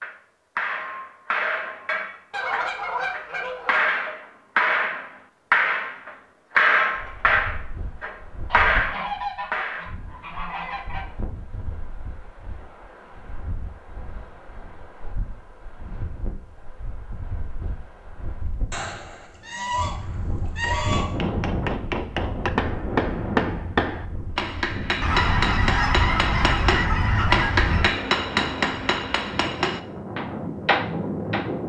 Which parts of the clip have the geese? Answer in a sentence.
The geese can be heard from 2.3 to 3.8 s, from 8.5 to 11.1 s, from 18.7 to 21.1 s and from 25.0 to 27.9 s.